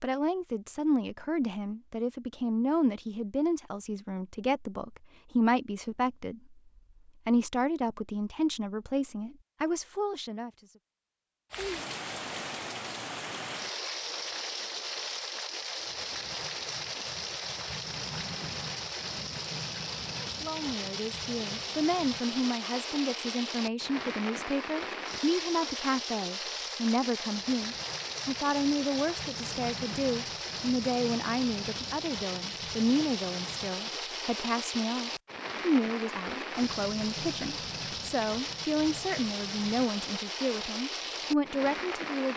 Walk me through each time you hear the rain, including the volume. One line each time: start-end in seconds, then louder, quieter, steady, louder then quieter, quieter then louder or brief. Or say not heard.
11.5-42.3 steady.